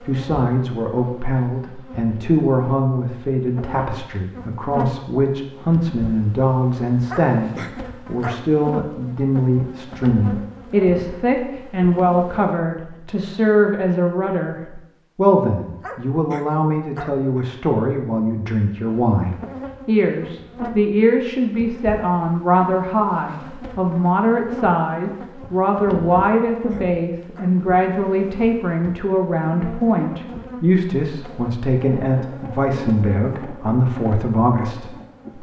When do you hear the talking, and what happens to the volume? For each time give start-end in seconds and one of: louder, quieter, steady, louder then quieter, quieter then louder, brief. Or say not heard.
0.0-35.3 steady.